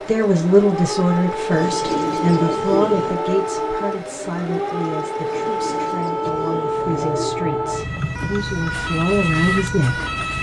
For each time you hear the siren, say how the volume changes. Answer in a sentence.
You can hear the siren from 0.0 to 10.3 s, at a steady volume.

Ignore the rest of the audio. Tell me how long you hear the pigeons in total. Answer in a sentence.
The pigeons can be heard for 4 seconds in total.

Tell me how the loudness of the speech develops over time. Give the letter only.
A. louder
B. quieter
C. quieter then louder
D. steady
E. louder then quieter
C.